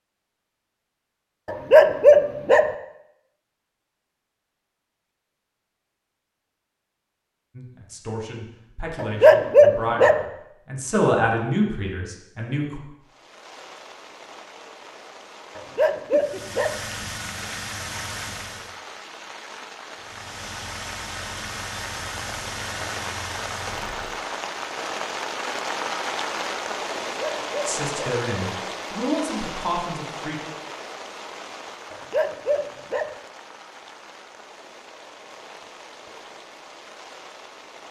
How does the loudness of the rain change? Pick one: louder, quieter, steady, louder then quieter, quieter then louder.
louder then quieter.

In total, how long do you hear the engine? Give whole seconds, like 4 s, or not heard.
7 s.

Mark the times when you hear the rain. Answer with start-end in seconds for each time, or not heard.
13.0-37.8.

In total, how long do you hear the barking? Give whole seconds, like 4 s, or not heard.
6 s.